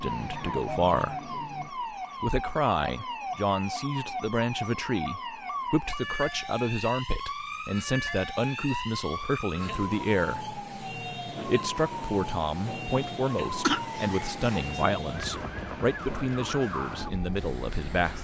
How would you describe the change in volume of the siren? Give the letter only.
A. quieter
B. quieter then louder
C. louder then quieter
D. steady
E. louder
D.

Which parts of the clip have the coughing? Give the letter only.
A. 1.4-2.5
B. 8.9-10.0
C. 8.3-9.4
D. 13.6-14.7
D.